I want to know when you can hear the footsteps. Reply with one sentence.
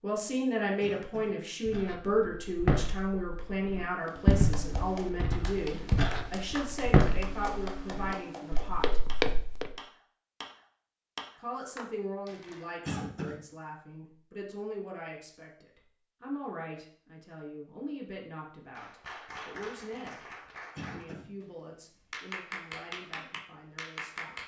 The footsteps can be heard from 1.6 to 9.7 s.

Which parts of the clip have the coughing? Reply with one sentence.
You can hear the coughing from 0.8 to 1.4 s, from 12.8 to 13.4 s and from 20.8 to 21.3 s.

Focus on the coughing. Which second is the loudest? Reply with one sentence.
The volume of the coughing peaks at 13 seconds.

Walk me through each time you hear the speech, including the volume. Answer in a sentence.
The speech can be heard from 0.0 to 9.1 s, getting quieter; and from 11.3 to 24.4 s, getting quieter.